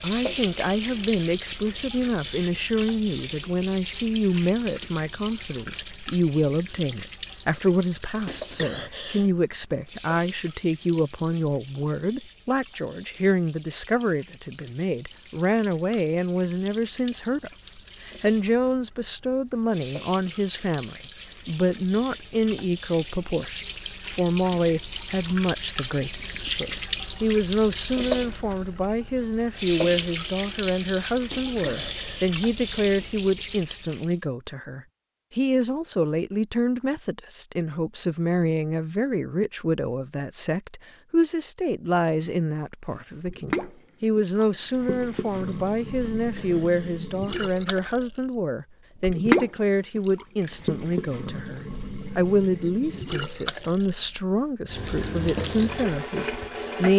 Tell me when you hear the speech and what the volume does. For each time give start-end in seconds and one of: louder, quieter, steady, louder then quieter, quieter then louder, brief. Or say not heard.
0.0-56.9 steady.